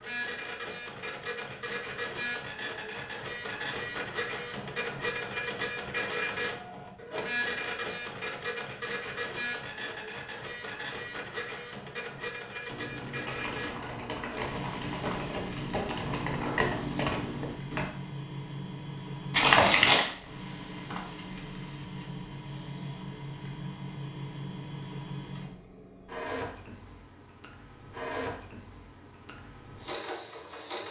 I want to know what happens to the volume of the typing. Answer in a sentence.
The volume of the typing goes up.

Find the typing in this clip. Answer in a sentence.
You can hear the typing from 12.7 to 17.9 s.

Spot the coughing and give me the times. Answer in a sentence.
The coughing can't be heard in this clip.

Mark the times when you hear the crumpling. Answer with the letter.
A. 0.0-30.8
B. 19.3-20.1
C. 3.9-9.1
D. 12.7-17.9
B.